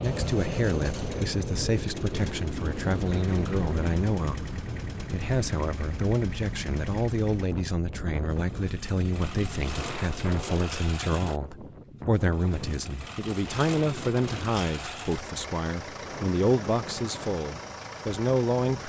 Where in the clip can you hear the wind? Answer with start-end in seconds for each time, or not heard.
0.0-18.8.